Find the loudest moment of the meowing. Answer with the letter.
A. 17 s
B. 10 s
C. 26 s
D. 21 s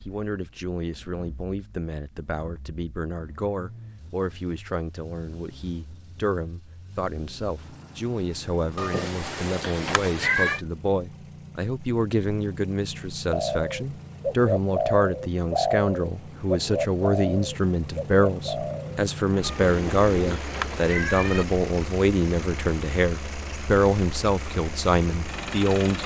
B.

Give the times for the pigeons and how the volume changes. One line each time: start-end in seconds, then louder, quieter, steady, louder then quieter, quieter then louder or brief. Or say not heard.
13.2-20.9 quieter.